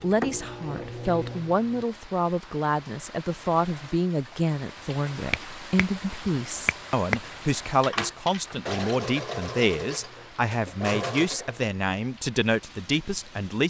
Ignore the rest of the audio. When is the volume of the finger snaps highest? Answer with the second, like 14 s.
7 s.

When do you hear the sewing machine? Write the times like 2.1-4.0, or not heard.
0.0-1.9, 7.6-13.6.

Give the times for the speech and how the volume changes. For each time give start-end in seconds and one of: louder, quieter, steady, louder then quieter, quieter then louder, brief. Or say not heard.
0.0-13.6 steady.